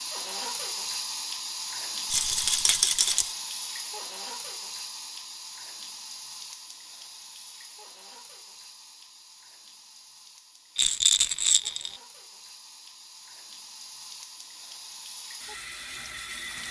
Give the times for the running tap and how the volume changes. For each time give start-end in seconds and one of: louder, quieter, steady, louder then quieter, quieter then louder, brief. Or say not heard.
0.0-16.6 quieter then louder.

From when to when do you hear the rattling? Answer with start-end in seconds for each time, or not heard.
2.1-3.4, 10.8-11.9.